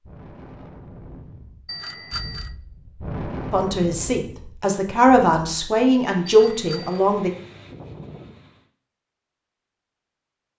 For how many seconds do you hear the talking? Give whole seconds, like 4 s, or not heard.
4 s.